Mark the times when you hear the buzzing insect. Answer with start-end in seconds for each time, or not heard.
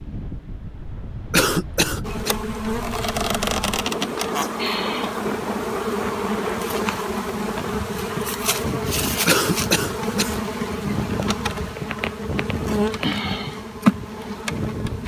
2.0-15.0.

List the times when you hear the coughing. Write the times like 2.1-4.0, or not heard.
1.3-2.3, 9.2-10.3.